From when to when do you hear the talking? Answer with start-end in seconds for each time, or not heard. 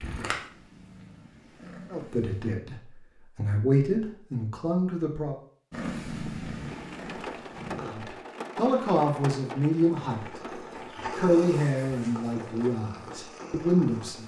1.9-5.3, 7.8-14.2.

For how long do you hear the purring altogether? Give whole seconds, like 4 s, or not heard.
9 s.